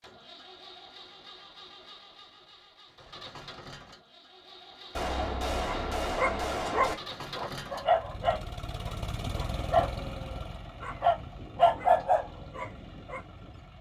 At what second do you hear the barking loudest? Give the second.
12 s.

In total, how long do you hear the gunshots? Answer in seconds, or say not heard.
2 s.